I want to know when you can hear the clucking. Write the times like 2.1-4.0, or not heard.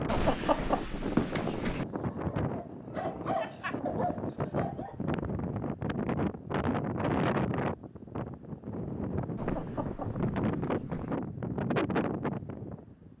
0.1-1.9, 9.3-11.2.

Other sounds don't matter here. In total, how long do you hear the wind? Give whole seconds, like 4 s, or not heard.
13 s.